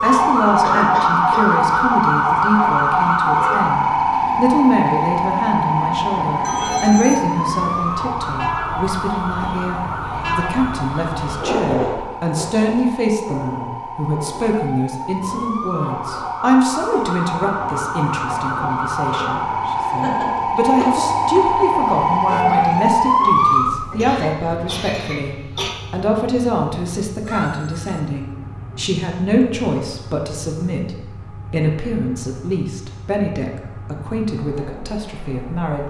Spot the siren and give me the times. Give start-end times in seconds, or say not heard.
0.0-23.9.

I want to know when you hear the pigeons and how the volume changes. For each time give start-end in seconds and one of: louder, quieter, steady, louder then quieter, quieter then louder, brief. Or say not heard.
not heard.